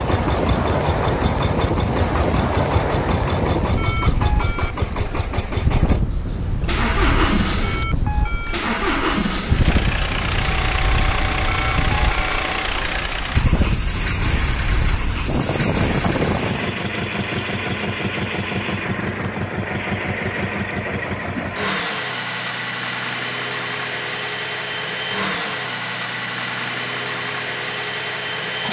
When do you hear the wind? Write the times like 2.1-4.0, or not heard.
0.0-16.8.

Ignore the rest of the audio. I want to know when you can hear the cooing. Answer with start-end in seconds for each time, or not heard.
not heard.